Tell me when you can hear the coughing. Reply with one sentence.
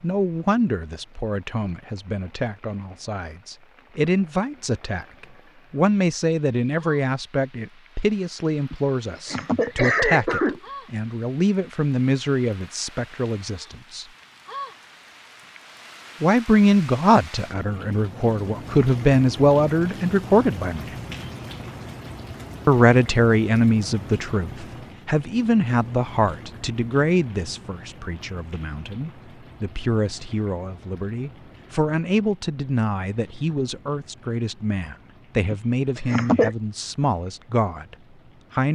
You can hear the coughing from 8.7 to 10.6 s and from 35.5 to 36.5 s.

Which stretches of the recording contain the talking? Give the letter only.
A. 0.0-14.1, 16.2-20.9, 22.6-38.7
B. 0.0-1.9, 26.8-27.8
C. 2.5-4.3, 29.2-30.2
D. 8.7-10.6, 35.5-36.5
A.